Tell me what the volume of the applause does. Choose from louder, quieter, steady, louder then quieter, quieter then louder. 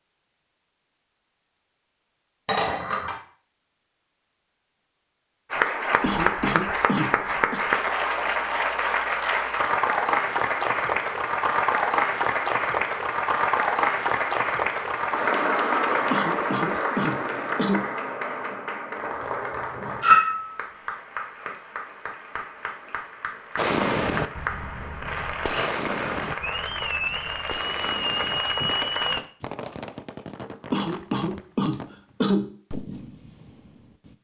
quieter then louder.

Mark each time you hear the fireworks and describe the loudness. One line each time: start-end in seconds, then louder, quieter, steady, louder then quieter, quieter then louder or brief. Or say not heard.
23.6-34.1 quieter.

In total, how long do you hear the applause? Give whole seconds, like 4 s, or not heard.
24 s.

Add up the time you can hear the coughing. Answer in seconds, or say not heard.
5 s.